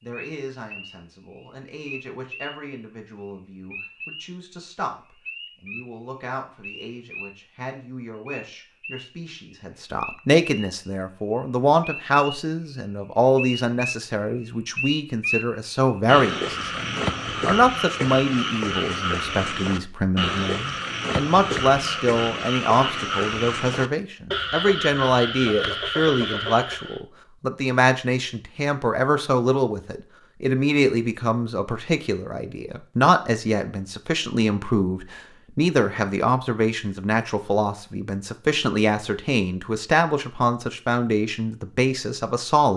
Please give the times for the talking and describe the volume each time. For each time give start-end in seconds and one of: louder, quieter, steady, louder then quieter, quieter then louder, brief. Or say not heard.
0.0-42.7 louder.